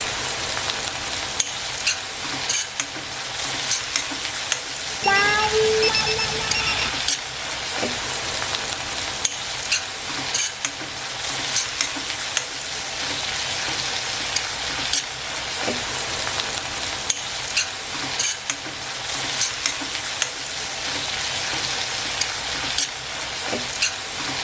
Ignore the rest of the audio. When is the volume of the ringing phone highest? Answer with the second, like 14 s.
5 s.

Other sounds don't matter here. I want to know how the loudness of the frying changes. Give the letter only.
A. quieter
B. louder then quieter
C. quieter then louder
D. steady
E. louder
D.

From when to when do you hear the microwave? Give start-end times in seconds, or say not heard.
not heard.